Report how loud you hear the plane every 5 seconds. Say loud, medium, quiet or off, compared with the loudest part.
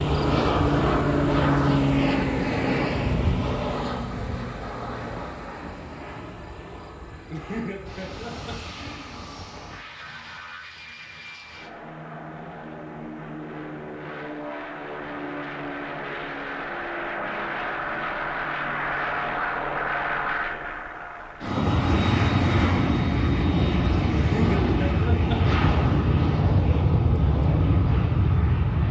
loud, quiet, quiet, medium, loud, loud.